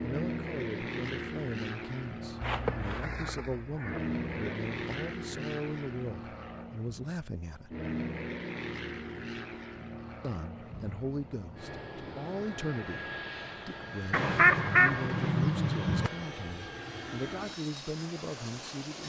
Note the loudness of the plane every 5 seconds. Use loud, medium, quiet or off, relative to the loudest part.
loud, loud, medium, medium.